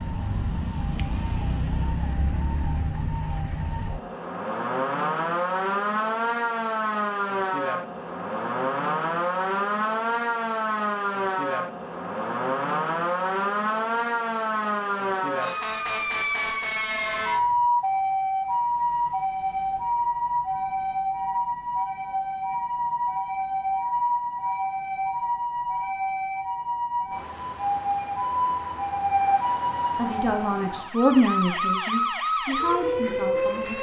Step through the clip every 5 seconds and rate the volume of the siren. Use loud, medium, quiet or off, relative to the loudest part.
medium, loud, loud, loud, loud, loud, loud.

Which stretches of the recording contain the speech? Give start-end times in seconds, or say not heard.
29.9-33.7.